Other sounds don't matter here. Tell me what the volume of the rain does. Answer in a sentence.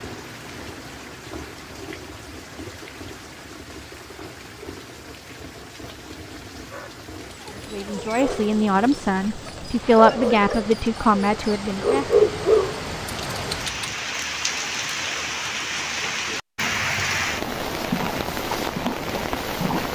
The volume of the rain goes up.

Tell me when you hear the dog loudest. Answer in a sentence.
The volume of the dog peaks at 12 seconds.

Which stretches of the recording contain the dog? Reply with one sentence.
You can hear the dog from 6.7 to 13.9 s.